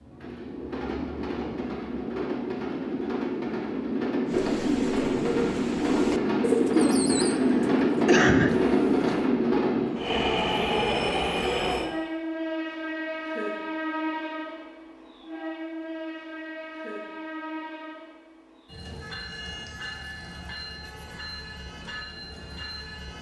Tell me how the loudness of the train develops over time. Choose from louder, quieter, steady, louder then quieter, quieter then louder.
louder then quieter.